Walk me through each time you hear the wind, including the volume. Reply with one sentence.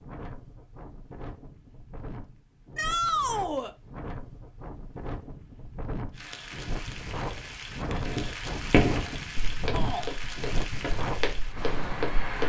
You can hear the wind from 0.0 to 12.4 s, getting louder.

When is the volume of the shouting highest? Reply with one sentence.
The volume of the shouting peaks at 3 seconds.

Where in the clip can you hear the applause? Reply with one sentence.
You can hear the applause from 6.1 to 12.4 s.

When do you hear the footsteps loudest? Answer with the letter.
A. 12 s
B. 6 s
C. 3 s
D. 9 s
D.